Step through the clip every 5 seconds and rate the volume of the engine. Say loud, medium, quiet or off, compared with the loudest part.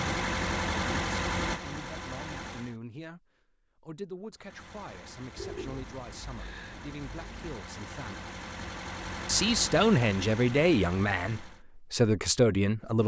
loud, medium, medium.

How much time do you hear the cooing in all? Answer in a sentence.
The cooing can be heard for 2 seconds in total.